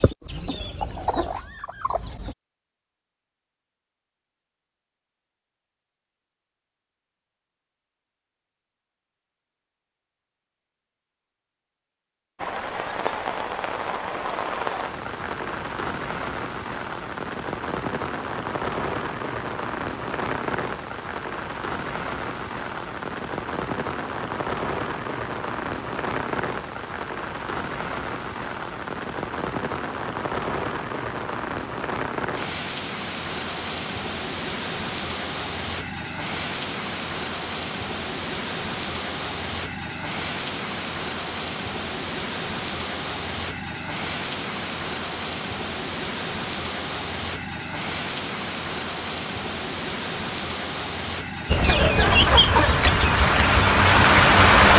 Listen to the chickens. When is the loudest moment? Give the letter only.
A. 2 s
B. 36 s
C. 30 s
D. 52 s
D.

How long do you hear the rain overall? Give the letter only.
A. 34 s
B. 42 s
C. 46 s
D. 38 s
B.